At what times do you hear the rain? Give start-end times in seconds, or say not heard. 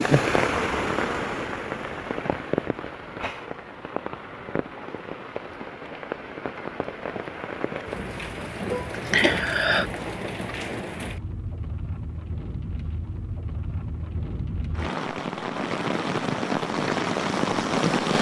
0.0-18.1.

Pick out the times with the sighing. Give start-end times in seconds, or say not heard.
8.7-9.9.